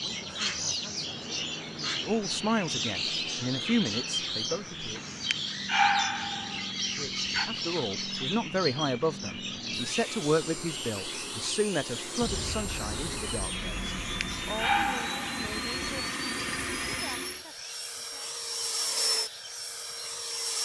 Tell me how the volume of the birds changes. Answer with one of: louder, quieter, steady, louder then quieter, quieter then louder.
quieter.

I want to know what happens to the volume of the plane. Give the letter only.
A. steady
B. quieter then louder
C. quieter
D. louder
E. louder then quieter
D.